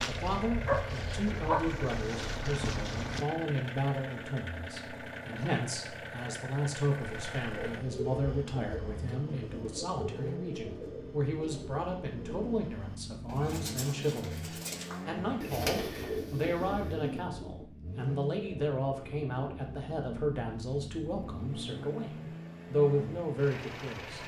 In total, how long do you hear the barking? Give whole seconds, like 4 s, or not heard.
3 s.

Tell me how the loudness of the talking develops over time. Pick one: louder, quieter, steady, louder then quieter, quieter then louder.
steady.